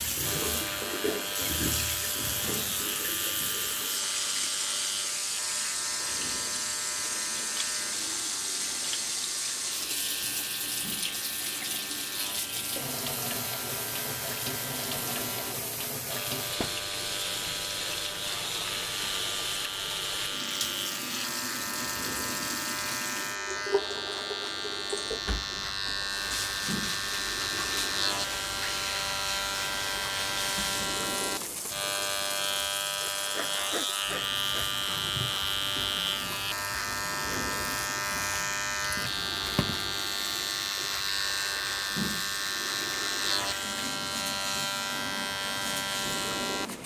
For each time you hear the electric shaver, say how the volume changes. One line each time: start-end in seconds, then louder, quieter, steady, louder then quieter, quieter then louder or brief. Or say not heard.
0.0-46.8 louder.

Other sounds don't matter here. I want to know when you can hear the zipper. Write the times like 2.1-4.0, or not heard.
not heard.